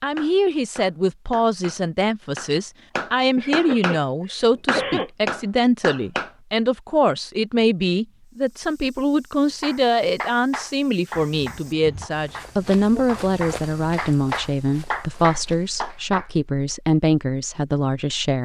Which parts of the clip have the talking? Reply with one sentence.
You can hear the talking from 0.0 to 18.4 s.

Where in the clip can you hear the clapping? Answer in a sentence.
You can hear the clapping from 0.1 to 4.0 s, from 4.7 to 6.3 s and from 9.6 to 16.2 s.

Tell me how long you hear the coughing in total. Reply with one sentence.
The coughing can be heard for 3 seconds in total.